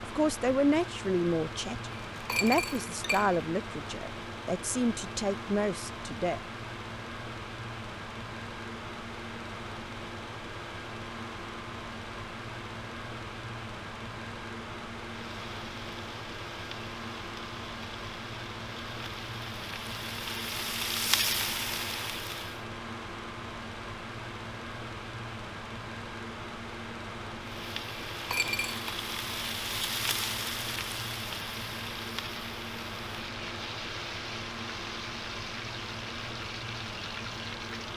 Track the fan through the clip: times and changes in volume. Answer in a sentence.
You can hear the fan from 0.0 to 37.9 s, at a steady volume.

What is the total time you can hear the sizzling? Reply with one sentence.
You can hear the sizzling for 18 seconds altogether.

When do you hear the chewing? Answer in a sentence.
You can't hear the chewing here.